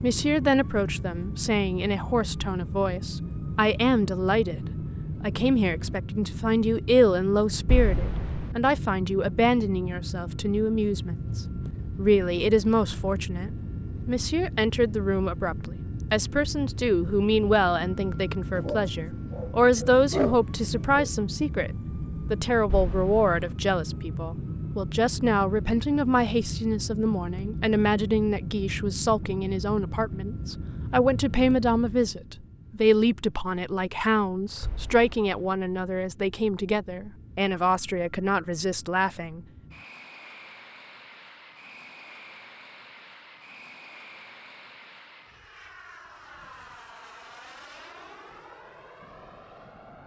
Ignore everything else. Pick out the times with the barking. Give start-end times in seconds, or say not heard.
18.6-21.1.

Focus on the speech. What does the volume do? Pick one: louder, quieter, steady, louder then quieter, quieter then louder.
steady.